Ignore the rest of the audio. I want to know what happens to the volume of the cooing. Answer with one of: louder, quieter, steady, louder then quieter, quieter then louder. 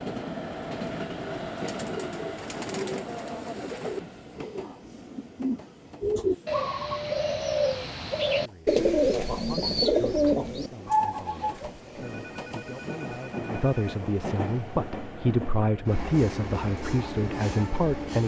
louder.